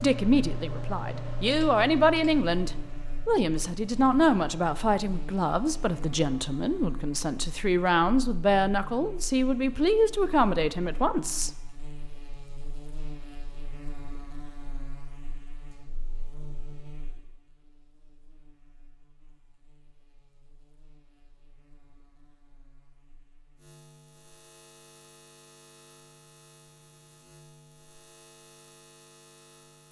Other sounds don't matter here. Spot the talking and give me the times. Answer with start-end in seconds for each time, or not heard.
0.0-11.5.